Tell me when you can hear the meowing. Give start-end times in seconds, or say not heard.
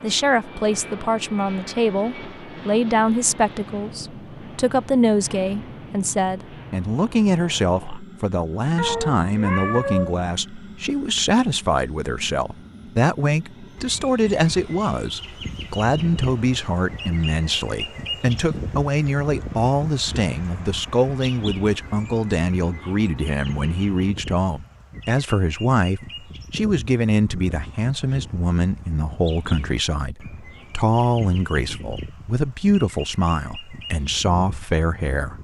8.8-10.2.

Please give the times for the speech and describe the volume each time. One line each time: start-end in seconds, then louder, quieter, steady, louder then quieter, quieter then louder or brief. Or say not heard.
0.0-35.4 steady.